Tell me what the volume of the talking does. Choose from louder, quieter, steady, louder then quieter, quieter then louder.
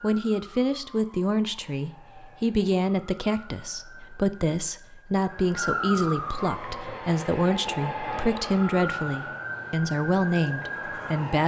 steady.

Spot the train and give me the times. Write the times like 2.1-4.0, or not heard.
6.2-9.5.